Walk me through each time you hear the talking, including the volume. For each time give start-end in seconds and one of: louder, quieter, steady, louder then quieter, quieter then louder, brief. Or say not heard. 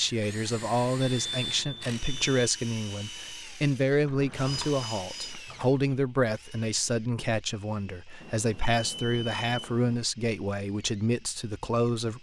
0.0-12.1 steady.